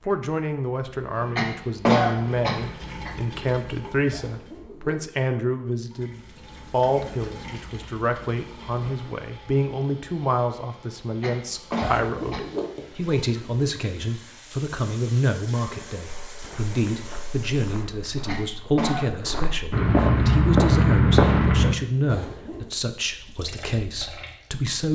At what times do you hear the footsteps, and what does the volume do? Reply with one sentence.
The footsteps can be heard from 16.2 to 21.8 s, getting louder.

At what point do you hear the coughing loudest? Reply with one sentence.
The volume of the coughing peaks at 2 seconds.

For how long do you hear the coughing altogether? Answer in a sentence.
The coughing can be heard for 4 seconds in total.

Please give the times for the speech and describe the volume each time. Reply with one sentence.
The speech can be heard from 0.1 to 24.9 s, at a steady volume.